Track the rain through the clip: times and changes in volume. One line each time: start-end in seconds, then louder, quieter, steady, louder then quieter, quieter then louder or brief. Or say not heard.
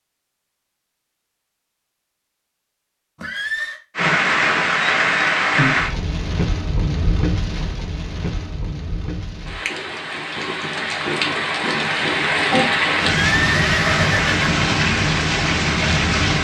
4.0-16.3 quieter then louder.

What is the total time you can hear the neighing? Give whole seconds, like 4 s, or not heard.
2 s.